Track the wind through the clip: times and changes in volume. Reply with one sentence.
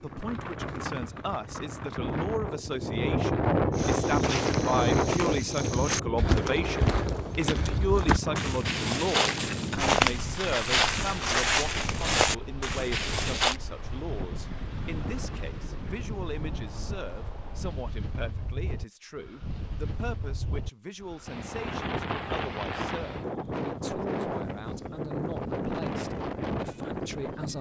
The wind can be heard from 0.0 to 27.5 s, getting quieter then louder.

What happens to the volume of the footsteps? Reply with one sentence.
The loudness of the footsteps goes up.